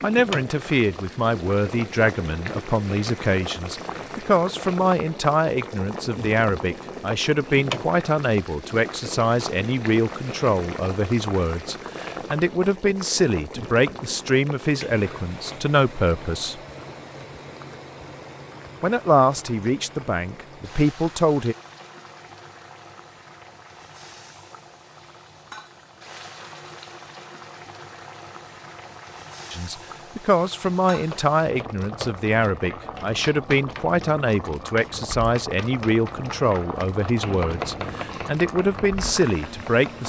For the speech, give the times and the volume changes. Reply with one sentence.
You can hear the speech from 0.0 to 16.6 s, at a steady volume; briefly from 18.8 to 21.6 s; and from 29.5 to 40.0 s, at a steady volume.